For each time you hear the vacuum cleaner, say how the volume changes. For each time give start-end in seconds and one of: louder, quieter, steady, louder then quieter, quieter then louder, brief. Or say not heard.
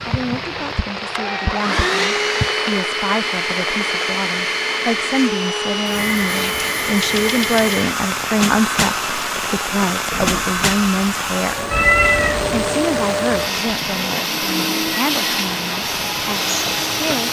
0.0-17.2 steady.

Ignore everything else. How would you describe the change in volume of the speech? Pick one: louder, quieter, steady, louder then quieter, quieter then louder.
louder then quieter.